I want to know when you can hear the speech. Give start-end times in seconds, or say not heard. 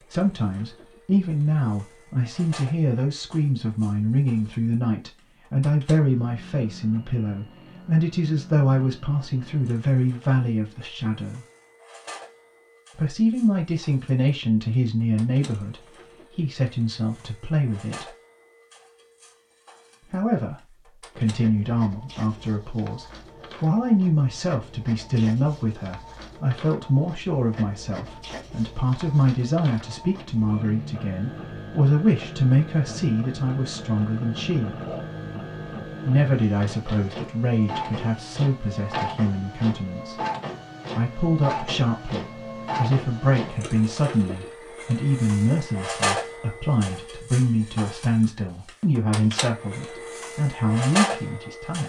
0.1-11.4, 12.9-18.1, 20.1-34.8, 36.0-40.2, 41.0-51.8.